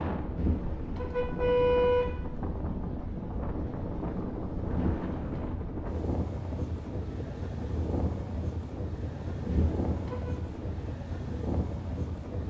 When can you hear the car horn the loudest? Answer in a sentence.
The volume of the car horn peaks at 2 seconds.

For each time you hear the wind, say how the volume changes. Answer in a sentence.
The wind can be heard from 0.0 to 12.4 s, at a steady volume.